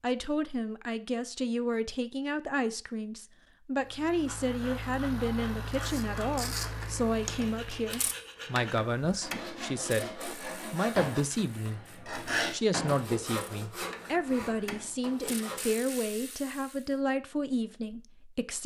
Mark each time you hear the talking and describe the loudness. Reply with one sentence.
You can hear the talking from 0.0 to 18.6 s, at a steady volume.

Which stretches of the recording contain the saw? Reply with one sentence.
The saw can be heard from 4.2 to 15.8 s.